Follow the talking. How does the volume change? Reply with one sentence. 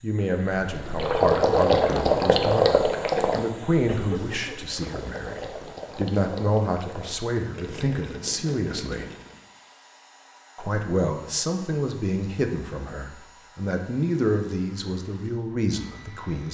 The volume of the talking stays about the same.